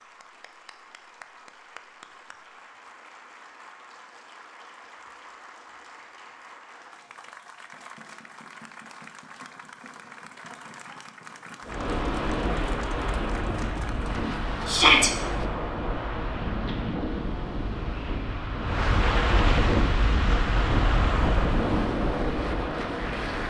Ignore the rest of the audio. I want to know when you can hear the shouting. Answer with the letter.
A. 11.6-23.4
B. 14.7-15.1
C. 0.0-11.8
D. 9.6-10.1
B.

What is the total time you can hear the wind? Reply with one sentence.
The wind can be heard for 12 seconds in total.